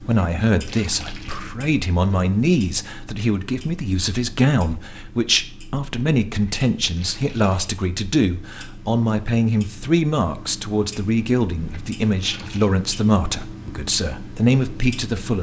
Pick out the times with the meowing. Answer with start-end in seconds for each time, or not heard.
not heard.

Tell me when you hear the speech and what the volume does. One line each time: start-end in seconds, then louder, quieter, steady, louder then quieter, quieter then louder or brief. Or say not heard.
0.0-15.3 steady.